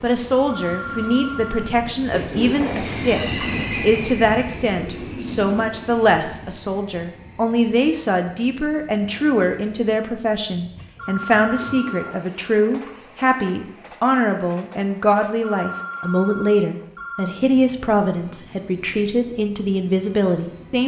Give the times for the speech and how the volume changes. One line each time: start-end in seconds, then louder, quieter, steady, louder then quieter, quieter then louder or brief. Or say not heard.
0.0-20.8 steady.